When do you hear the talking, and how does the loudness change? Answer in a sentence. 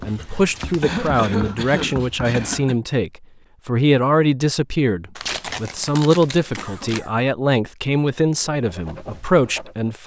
You can hear the talking from 0.1 to 10.0 s, at a steady volume.